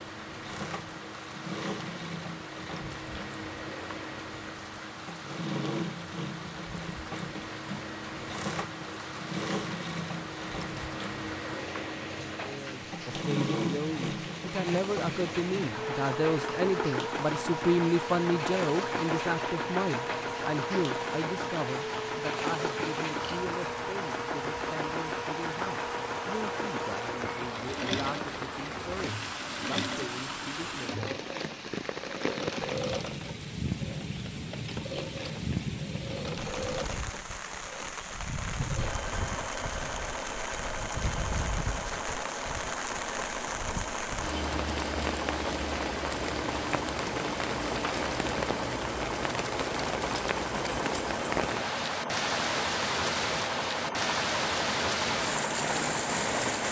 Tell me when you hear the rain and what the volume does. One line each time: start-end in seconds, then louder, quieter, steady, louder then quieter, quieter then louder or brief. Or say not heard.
0.0-56.6 louder.